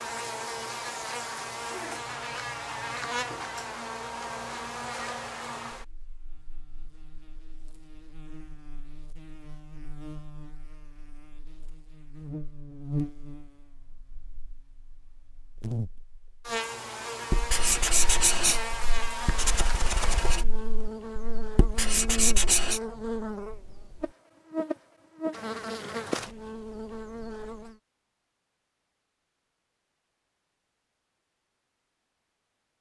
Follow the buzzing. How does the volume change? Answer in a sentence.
The loudness of the buzzing goes down, then up.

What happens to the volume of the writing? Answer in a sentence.
The volume of the writing goes down, then up.